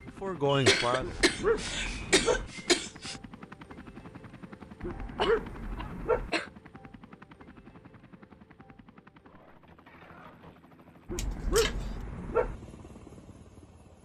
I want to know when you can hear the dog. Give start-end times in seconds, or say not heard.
1.0-2.5, 4.8-6.3, 11.1-12.6.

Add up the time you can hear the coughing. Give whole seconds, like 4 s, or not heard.
5 s.